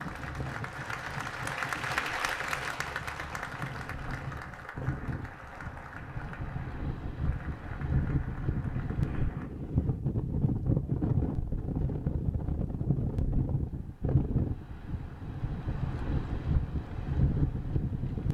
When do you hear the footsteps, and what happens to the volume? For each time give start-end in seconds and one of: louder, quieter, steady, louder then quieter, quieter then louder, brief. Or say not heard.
not heard.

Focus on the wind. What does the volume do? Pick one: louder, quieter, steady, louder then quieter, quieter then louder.
louder.